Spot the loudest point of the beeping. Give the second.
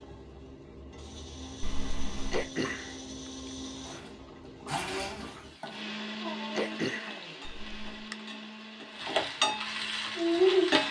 2 s.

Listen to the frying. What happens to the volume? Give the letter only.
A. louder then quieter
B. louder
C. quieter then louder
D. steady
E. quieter
B.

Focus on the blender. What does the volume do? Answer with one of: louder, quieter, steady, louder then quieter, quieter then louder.
louder then quieter.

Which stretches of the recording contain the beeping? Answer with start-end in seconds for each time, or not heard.
1.6-2.5, 7.4-8.1.